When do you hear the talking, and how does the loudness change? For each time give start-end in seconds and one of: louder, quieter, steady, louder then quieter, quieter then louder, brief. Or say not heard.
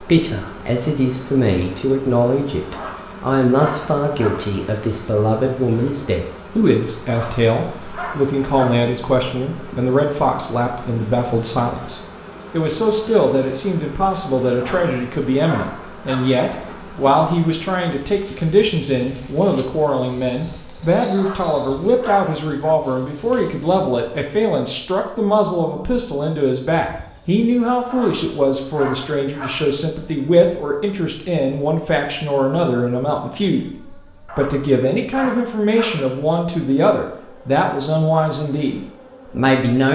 0.0-39.8 steady.